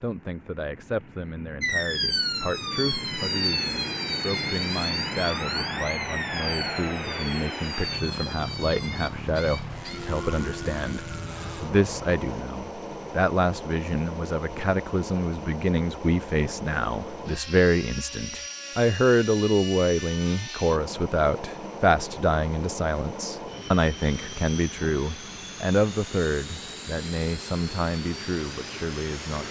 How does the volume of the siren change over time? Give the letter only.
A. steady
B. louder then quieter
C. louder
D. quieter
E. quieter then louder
D.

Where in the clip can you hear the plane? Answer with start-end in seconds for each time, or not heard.
0.0-29.4.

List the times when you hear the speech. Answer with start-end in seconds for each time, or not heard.
0.0-29.4.